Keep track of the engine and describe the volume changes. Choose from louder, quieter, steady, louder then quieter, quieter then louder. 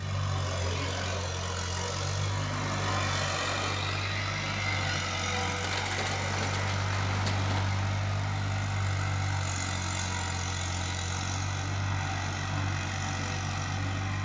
steady.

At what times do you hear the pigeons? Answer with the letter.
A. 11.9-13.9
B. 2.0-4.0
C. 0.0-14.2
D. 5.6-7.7
D.